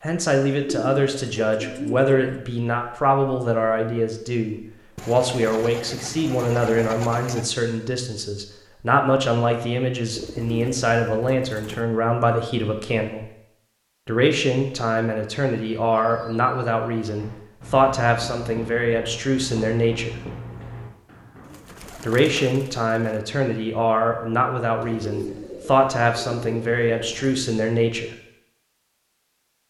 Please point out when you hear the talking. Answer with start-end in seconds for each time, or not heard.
0.0-13.2, 14.1-20.1, 22.0-28.1.